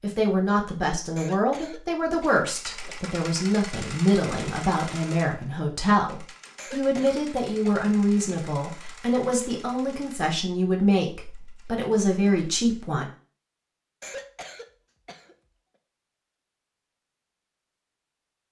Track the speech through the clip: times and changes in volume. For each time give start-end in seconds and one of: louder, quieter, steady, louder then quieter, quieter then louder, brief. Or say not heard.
0.0-13.1 steady.